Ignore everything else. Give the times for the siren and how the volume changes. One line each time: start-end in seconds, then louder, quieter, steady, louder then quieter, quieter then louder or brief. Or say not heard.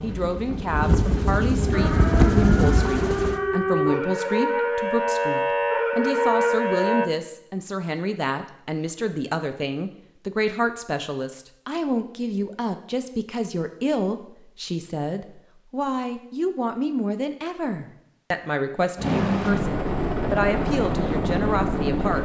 1.7-7.1 louder.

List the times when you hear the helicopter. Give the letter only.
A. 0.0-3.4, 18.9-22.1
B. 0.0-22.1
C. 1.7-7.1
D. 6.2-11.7
A.